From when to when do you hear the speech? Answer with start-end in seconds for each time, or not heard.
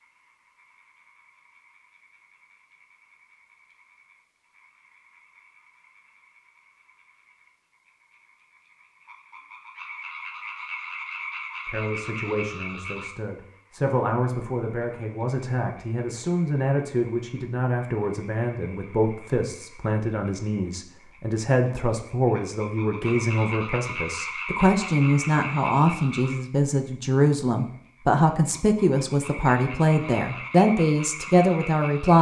11.7-32.1.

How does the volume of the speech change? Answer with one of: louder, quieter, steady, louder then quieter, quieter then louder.
louder.